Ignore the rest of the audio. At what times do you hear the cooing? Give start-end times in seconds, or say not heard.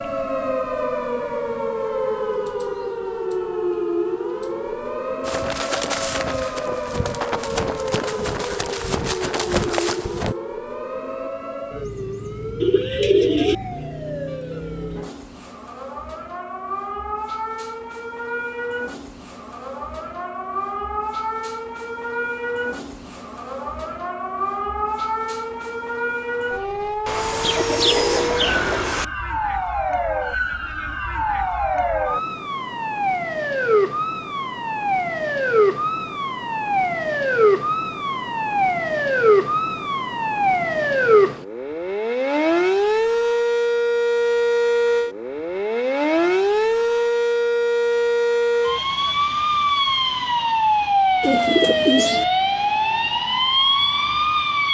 12.6-13.6, 27.1-29.1, 51.2-52.2.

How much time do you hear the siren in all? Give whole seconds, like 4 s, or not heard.
55 s.